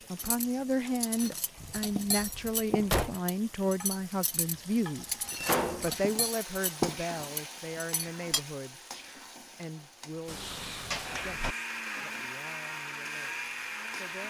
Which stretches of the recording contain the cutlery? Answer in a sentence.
The cutlery can be heard from 0.1 to 8.4 s.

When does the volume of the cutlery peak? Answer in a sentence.
The loudest moment of the cutlery is at 7 seconds.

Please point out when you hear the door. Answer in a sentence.
The door can be heard from 1.6 to 3.1 s, from 5.3 to 5.9 s and from 10.2 to 11.6 s.